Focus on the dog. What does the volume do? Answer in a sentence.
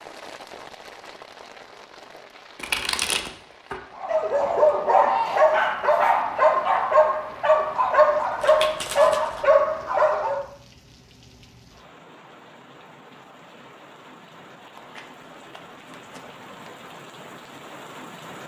The loudness of the dog stays about the same.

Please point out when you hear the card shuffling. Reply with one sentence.
The card shuffling can be heard from 2.5 to 3.8 s, from 8.4 to 9.5 s and from 14.8 to 16.7 s.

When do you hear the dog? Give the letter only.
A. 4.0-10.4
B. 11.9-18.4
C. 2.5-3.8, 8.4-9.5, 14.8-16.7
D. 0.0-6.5
A.